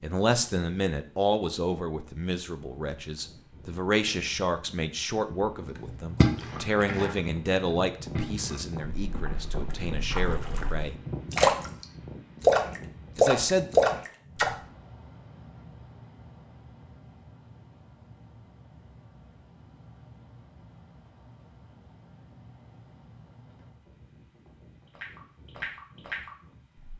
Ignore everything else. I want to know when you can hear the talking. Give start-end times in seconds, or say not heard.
0.0-10.9, 13.2-13.7.